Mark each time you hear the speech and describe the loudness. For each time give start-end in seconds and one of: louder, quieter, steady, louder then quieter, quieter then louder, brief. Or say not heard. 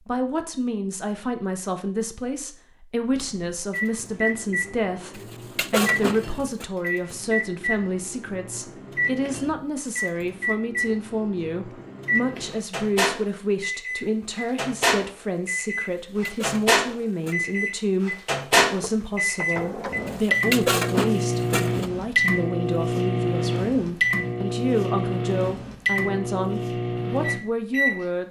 0.1-28.2 steady.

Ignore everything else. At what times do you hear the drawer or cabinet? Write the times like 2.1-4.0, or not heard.
3.1-3.6, 18.8-20.2.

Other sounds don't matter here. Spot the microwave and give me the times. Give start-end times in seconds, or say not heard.
3.7-28.2.